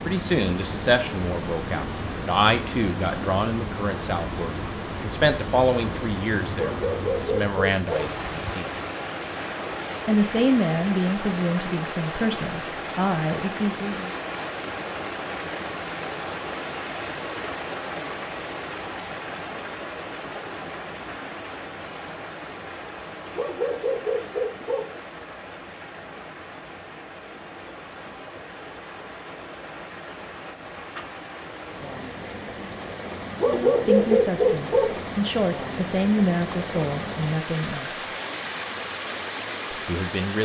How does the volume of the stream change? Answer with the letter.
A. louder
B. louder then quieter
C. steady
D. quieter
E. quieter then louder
E.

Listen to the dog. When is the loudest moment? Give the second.
34 s.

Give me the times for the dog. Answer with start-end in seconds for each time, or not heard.
6.5-8.1, 23.4-24.9, 33.4-34.9.